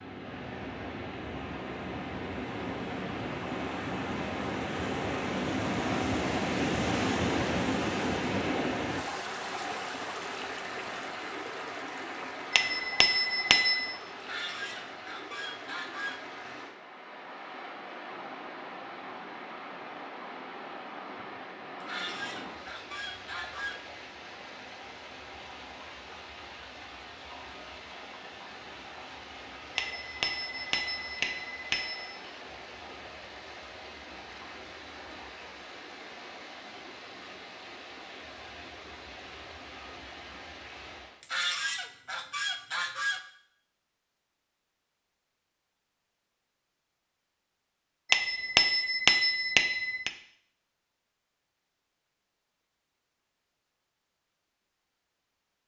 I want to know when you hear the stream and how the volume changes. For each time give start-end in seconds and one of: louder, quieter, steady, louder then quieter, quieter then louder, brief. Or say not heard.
0.0-41.2 quieter.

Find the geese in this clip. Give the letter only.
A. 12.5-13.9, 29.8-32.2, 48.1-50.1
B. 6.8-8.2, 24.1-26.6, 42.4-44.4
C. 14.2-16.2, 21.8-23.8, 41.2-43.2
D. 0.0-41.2
C.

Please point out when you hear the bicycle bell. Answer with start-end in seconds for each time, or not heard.
12.5-13.9, 29.8-32.2, 48.1-50.1.